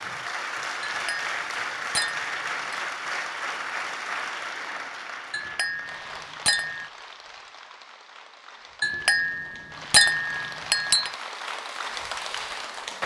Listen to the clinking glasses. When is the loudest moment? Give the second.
10 s.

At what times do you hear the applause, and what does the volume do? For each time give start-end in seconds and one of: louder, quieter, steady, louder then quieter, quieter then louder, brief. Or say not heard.
0.0-13.0 quieter then louder.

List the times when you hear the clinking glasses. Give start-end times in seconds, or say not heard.
0.8-2.8, 5.3-6.9, 8.8-11.1.